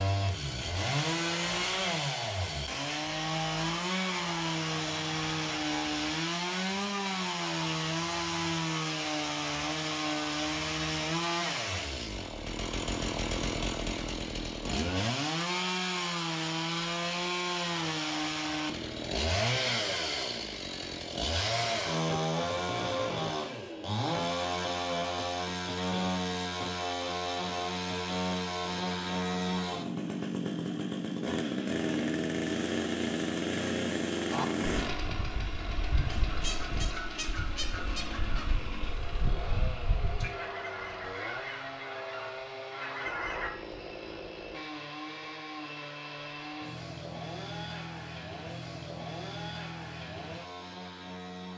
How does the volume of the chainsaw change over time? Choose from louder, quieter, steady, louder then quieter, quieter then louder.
quieter.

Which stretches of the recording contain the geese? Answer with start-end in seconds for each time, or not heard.
34.3-43.5.